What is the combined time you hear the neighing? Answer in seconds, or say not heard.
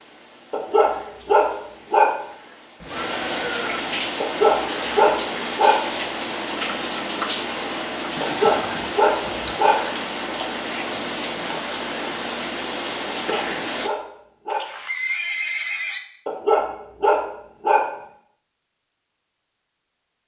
4 s.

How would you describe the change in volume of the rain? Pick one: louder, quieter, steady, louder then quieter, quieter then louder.
louder.